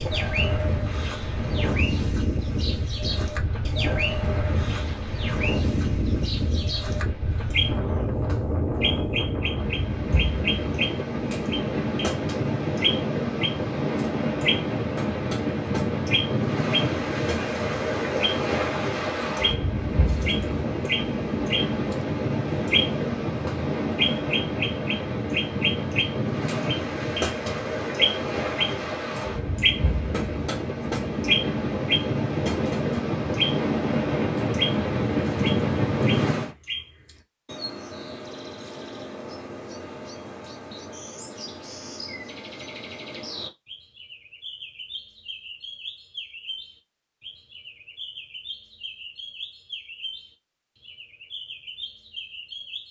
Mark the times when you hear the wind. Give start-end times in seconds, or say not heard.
0.0-36.5.